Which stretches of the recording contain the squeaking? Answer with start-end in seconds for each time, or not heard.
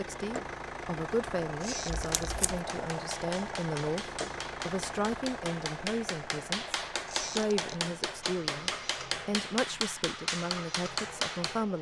1.6-2.3, 7.0-7.8.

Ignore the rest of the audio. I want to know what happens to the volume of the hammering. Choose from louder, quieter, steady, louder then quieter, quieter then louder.
louder.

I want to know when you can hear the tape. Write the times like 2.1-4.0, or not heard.
1.9-2.6.